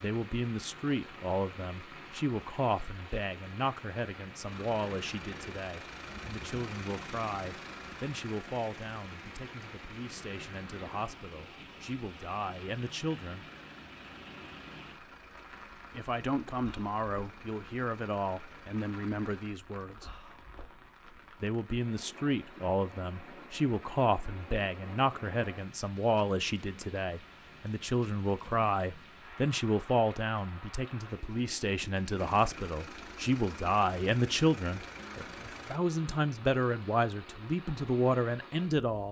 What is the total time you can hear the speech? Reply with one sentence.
The speech can be heard for 35 seconds in total.